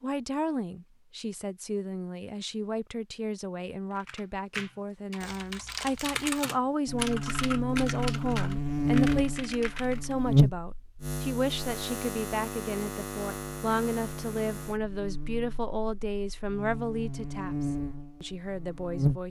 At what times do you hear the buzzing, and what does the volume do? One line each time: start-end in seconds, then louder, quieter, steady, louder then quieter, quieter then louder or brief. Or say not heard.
6.8-19.2 quieter then louder.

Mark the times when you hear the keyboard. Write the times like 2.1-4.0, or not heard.
4.0-10.2.